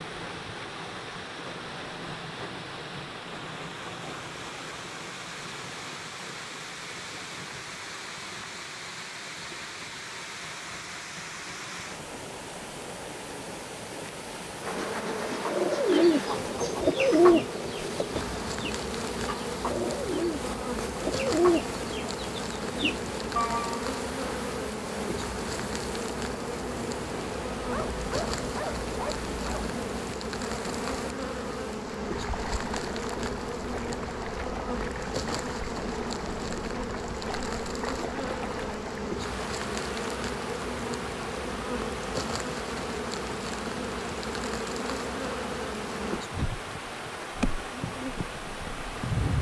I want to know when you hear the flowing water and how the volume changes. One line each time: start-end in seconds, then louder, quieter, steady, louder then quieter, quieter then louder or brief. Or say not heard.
0.0-49.3 steady.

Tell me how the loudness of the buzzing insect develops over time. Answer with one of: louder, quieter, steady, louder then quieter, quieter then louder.
steady.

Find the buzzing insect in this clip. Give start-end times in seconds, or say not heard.
14.6-49.3.